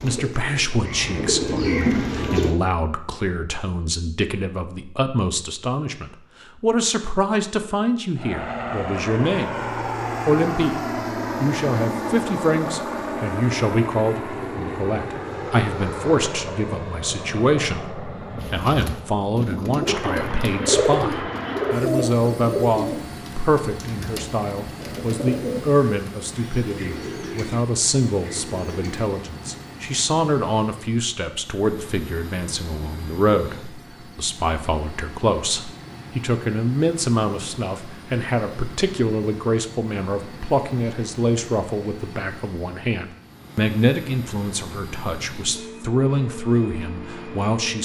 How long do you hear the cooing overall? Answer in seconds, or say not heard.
13 s.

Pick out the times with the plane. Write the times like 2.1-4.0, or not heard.
8.2-47.8.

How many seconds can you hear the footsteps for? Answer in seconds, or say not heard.
not heard.